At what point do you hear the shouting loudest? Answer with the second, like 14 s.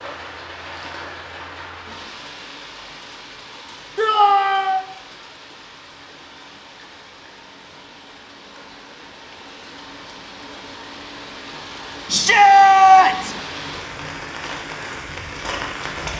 13 s.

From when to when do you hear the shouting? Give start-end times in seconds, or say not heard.
4.0-4.8, 12.1-13.3.